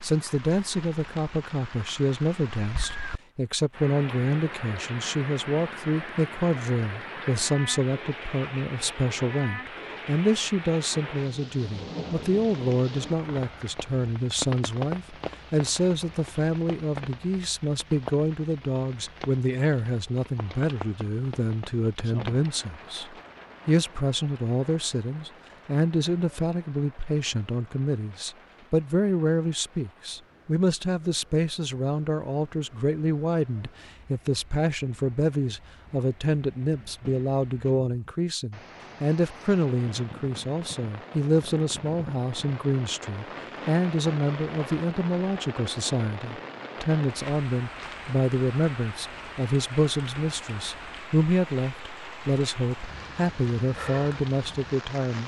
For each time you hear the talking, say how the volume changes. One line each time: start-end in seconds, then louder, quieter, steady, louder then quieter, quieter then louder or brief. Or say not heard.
0.0-55.2 steady.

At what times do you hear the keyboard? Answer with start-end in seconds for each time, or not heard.
not heard.